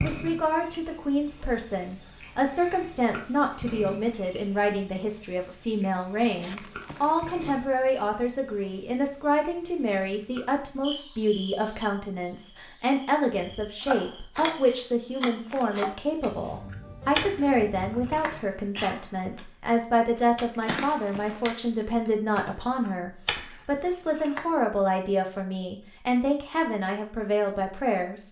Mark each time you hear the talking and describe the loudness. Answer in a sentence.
The talking can be heard from 0.0 to 28.2 s, at a steady volume.